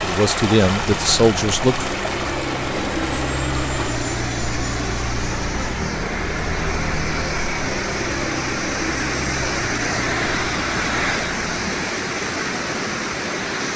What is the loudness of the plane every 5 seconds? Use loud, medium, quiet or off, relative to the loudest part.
loud, loud, medium.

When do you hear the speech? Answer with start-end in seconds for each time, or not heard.
0.0-1.9.